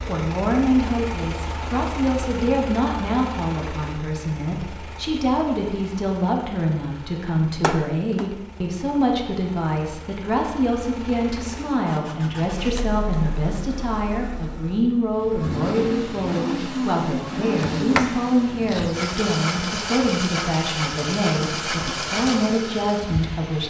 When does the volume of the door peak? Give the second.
18 s.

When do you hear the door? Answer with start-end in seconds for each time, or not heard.
7.6-8.3, 17.4-18.9.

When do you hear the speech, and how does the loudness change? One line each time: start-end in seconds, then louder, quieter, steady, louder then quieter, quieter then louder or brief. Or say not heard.
0.1-23.6 steady.